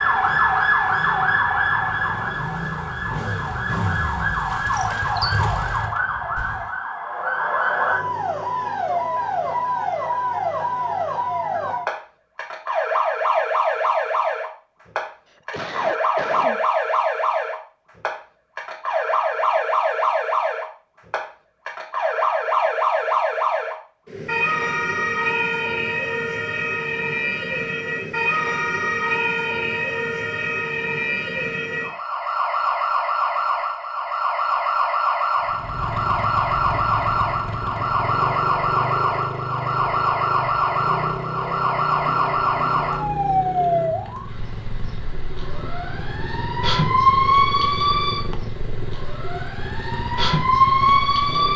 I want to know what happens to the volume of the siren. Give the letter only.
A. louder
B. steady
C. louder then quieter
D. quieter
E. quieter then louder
B.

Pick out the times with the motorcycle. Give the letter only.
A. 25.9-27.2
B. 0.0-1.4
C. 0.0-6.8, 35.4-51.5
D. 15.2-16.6
C.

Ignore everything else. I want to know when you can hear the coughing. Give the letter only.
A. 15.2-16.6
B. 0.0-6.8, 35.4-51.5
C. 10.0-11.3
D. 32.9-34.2
A.